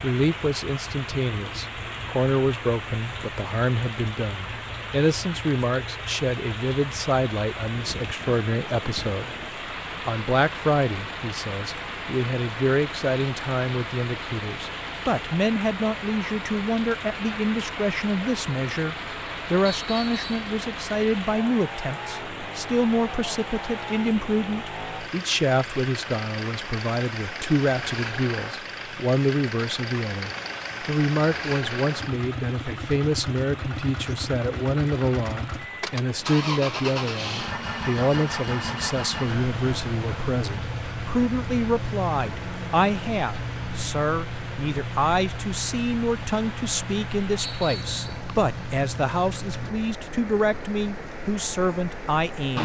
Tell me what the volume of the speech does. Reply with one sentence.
The volume of the speech stays about the same.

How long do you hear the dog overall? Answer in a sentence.
The dog can't be heard in this clip.